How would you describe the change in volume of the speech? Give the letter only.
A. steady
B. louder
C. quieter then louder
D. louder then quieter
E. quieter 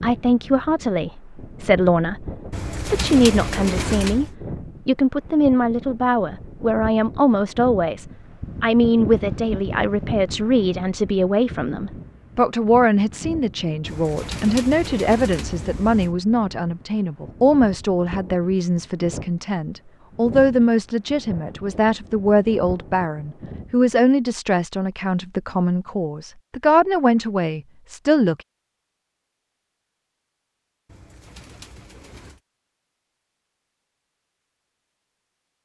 A.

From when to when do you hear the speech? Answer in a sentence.
The speech can be heard from 0.0 to 28.4 s.